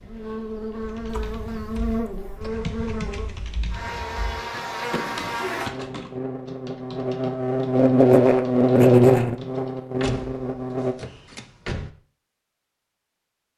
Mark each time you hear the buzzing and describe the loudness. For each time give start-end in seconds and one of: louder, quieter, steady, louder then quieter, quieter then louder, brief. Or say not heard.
0.0-10.9 louder.